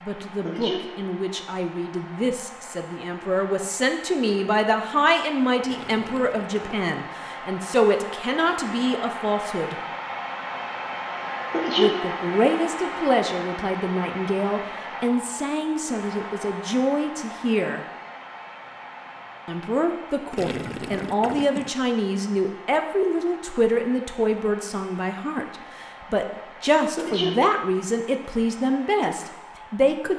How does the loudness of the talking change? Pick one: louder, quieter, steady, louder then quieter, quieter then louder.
steady.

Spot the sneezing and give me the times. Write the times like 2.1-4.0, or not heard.
0.4-0.9, 11.5-12.0, 26.9-27.4.